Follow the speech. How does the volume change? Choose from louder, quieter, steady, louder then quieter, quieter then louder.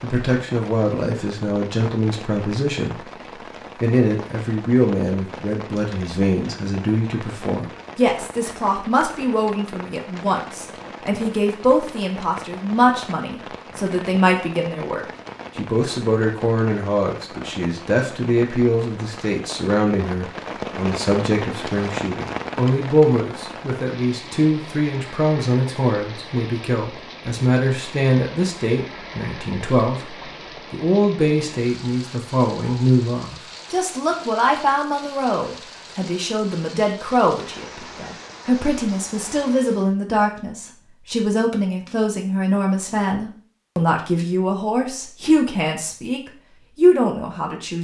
steady.